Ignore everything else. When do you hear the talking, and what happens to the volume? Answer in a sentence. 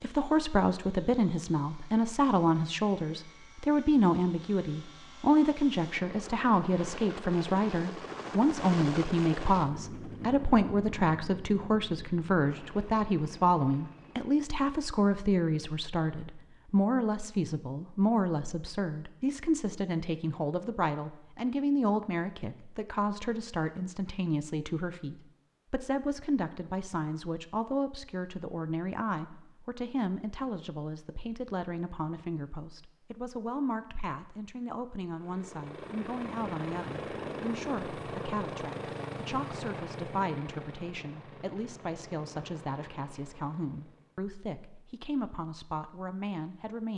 The talking can be heard from 0.0 to 46.9 s, getting quieter.